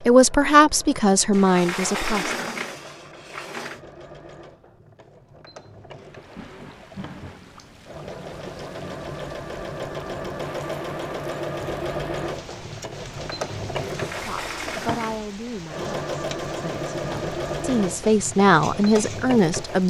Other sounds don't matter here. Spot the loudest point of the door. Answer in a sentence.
The loudest moment of the door is at 2 seconds.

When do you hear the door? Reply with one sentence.
You can hear the door from 1.3 to 3.8 s and from 13.8 to 15.2 s.